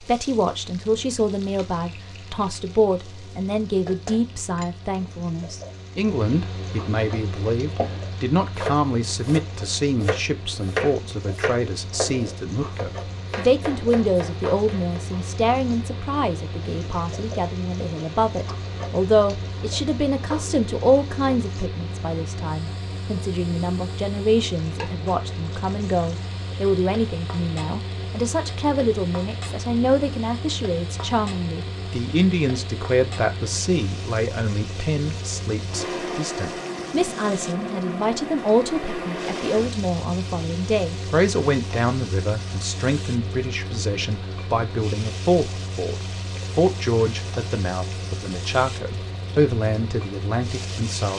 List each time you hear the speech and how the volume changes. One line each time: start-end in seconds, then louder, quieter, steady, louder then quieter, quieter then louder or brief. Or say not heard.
0.0-51.1 steady.